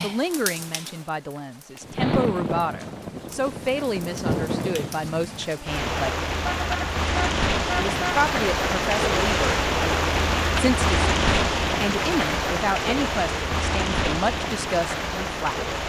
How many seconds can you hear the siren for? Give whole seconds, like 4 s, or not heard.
not heard.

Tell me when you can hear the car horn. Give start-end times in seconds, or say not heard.
6.3-8.2.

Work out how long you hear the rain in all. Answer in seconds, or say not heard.
16 s.